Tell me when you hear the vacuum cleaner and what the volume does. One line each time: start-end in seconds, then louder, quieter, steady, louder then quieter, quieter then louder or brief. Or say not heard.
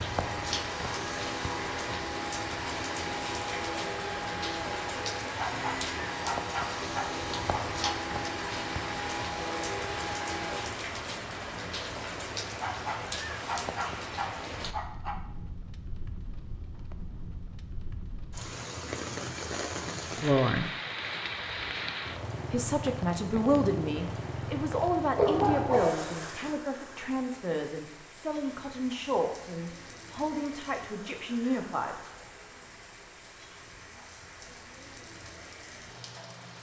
0.0-10.8 steady.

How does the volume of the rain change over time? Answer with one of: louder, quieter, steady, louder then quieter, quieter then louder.
quieter.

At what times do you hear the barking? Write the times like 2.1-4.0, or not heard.
5.3-8.0, 12.6-15.2, 25.1-26.5.